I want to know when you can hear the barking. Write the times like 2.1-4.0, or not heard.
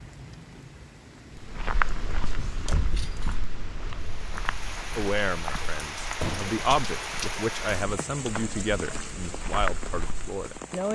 not heard.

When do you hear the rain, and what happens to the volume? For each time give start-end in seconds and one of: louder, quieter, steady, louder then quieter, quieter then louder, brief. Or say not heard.
0.0-10.9 louder then quieter.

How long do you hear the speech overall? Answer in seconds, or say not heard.
6 s.